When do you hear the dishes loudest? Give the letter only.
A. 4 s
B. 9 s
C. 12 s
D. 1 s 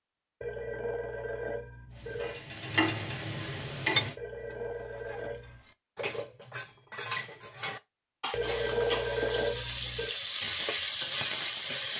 A.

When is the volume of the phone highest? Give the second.
9 s.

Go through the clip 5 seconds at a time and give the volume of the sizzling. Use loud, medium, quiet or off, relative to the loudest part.
loud, medium, loud.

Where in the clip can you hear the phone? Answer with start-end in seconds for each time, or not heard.
0.4-2.4, 4.2-5.6, 8.3-10.2.